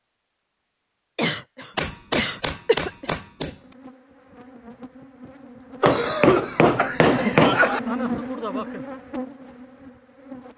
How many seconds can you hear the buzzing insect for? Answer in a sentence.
You can hear the buzzing insect for 7 seconds altogether.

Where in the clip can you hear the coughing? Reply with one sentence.
You can hear the coughing from 1.1 to 3.5 s and from 5.8 to 7.8 s.